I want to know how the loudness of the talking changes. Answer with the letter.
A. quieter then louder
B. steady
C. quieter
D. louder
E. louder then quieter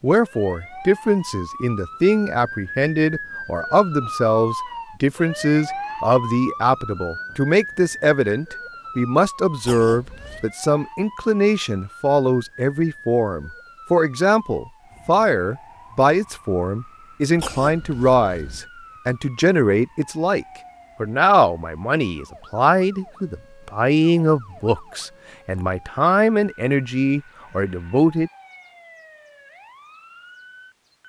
B.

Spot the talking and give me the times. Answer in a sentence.
You can hear the talking from 0.0 to 28.3 s.